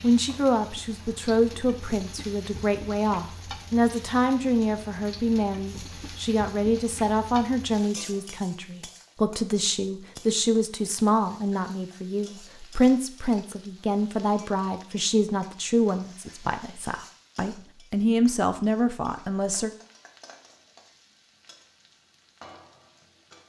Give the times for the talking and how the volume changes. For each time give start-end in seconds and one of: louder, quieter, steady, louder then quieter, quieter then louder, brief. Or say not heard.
0.0-19.7 steady.